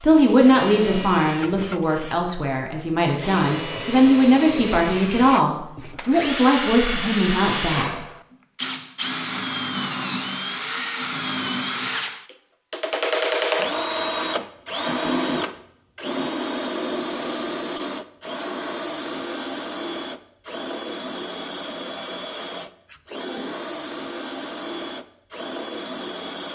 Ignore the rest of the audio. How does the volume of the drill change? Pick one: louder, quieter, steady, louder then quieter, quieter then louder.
louder then quieter.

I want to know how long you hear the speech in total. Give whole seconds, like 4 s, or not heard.
8 s.